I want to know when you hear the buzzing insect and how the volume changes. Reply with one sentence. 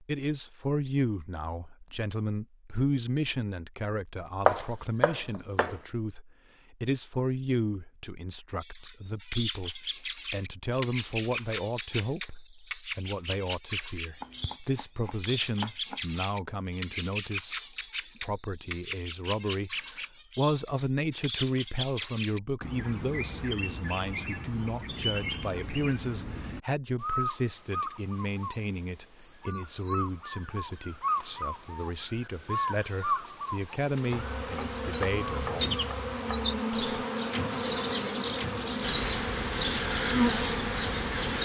The buzzing insect can be heard from 33.8 to 41.4 s, getting louder.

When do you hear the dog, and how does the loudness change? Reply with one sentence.
The dog can't be heard in this clip.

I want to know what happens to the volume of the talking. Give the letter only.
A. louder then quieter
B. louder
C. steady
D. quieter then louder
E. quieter
C.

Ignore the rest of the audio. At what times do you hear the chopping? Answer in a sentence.
You can hear the chopping from 4.5 to 5.8 s, from 14.2 to 16.2 s and from 34.1 to 36.5 s.